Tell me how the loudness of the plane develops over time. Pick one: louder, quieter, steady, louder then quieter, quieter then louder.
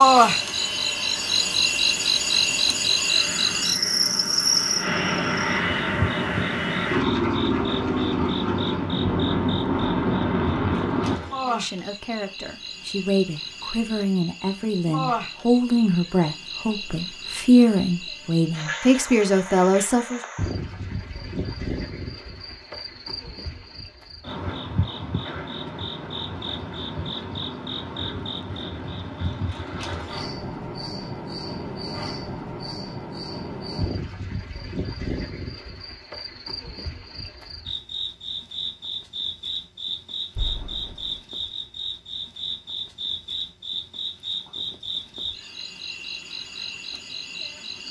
louder.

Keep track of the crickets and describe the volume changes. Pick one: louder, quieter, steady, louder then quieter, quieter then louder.
quieter.